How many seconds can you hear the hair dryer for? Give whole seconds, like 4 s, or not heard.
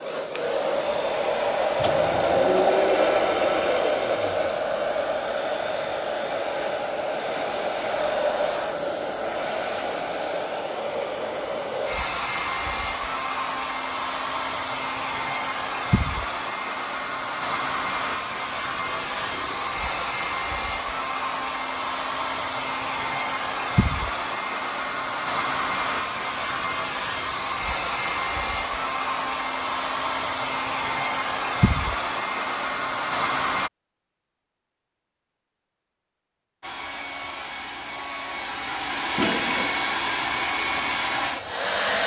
39 s.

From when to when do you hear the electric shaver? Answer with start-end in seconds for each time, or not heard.
not heard.